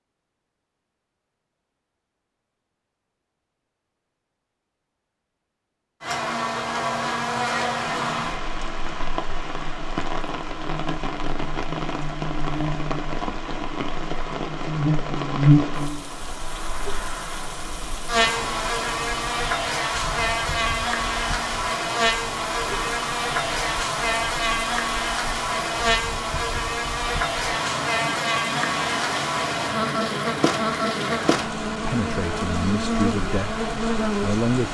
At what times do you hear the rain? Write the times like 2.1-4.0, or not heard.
7.8-34.6.